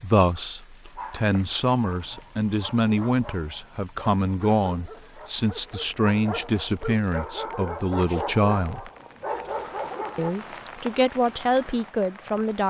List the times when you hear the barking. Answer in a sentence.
The barking can be heard from 0.8 to 10.3 s.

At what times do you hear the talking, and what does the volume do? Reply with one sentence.
You can hear the talking from 0.0 to 8.9 s, at a steady volume; and briefly from 10.2 to 12.6 s.